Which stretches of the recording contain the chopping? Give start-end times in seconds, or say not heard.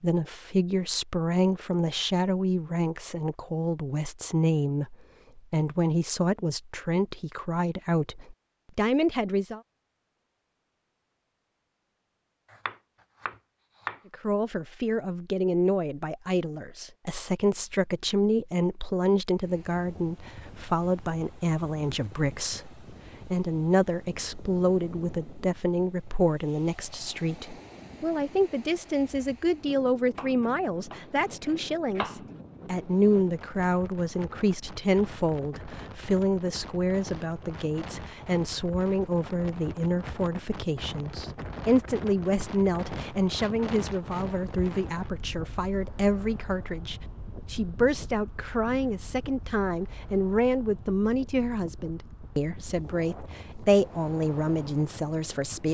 12.5-14.0, 30.1-32.3.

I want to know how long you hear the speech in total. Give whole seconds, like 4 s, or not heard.
51 s.